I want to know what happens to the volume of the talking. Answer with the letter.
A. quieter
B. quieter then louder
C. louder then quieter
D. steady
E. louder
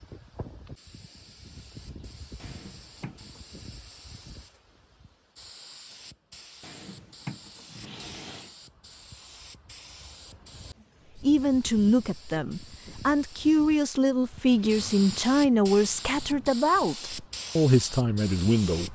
D.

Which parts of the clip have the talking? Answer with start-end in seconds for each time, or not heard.
11.2-18.9.